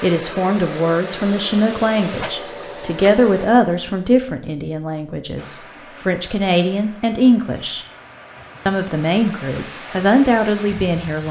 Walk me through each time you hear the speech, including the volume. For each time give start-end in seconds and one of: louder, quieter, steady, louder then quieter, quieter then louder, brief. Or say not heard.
0.0-7.8 quieter then louder
8.7-11.2 brief.